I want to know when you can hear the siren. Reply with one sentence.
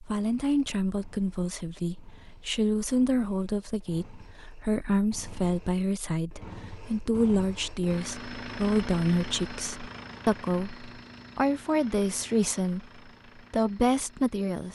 The siren can't be heard in this clip.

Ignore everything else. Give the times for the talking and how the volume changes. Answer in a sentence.
You can hear the talking from 0.0 to 12.8 s, at a steady volume; and briefly from 13.5 to 14.7 s.